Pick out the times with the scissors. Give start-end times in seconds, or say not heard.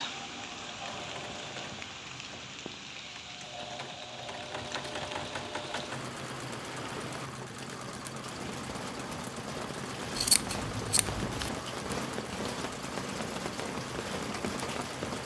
10.2-11.5.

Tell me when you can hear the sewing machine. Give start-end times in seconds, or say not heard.
0.0-15.2.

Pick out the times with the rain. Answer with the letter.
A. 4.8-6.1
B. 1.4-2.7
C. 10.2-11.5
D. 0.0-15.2
D.